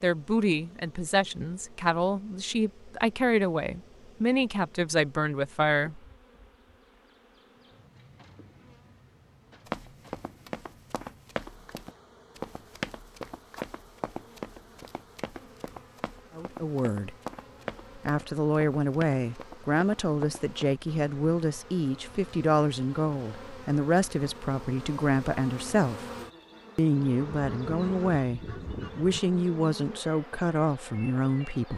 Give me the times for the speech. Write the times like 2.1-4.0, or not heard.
0.0-6.0, 16.4-17.1, 17.9-26.1, 26.8-31.7.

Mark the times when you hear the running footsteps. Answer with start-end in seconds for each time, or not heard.
9.7-20.6.